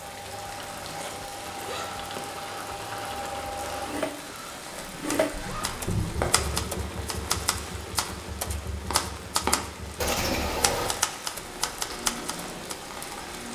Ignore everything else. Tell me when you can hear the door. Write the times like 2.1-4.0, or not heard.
not heard.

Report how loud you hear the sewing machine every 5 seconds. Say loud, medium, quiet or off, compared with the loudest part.
loud, loud, medium.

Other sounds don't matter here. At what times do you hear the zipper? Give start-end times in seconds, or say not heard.
0.8-2.1, 4.7-6.6, 10.0-10.9.